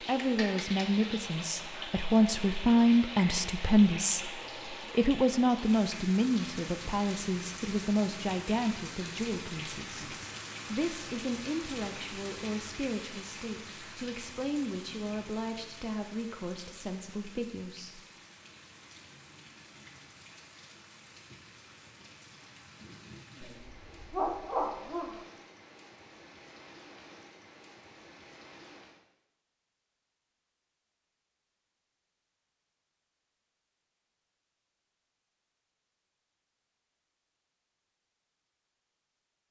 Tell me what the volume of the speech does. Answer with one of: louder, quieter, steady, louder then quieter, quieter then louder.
quieter.